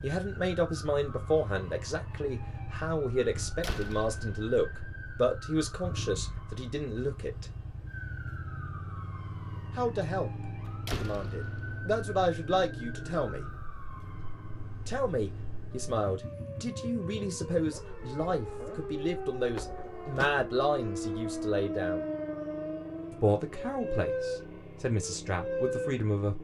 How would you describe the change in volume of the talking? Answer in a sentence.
The loudness of the talking stays about the same.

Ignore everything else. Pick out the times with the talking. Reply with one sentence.
You can hear the talking from 0.0 to 7.5 s, from 9.8 to 13.4 s, from 14.8 to 22.1 s and from 23.1 to 26.3 s.